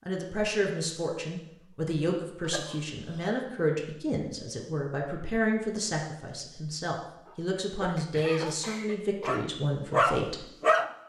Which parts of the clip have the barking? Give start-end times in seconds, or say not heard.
7.2-10.9.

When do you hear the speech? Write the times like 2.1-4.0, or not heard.
0.1-10.4.